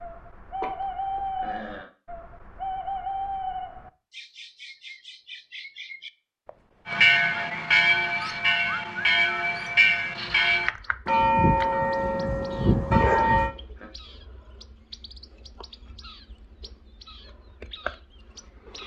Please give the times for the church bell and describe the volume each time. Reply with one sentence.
The church bell can be heard from 6.8 to 13.6 s, at a steady volume.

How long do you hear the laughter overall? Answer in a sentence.
You can hear the laughter for 2 seconds altogether.